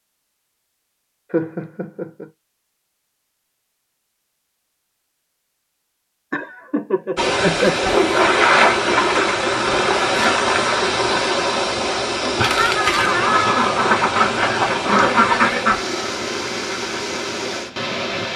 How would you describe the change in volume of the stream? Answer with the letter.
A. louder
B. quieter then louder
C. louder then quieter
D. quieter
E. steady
D.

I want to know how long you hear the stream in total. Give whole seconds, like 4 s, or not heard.
11 s.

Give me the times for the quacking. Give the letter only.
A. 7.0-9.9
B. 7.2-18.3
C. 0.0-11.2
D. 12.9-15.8
D.